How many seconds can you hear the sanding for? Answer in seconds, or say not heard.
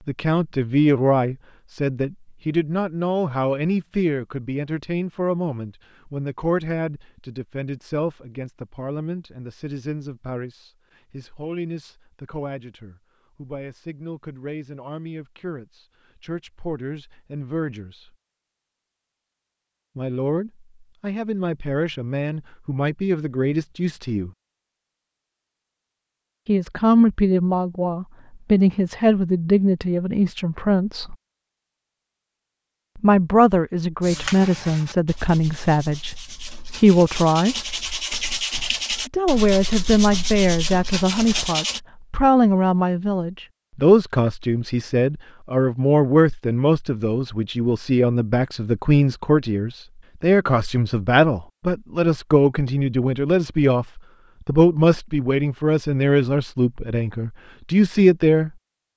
8 s.